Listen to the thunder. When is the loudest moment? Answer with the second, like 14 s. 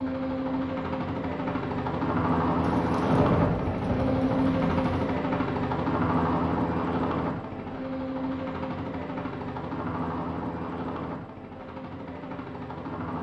3 s.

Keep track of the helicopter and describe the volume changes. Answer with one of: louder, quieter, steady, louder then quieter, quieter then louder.
quieter.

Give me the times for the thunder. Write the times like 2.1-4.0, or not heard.
2.6-5.2.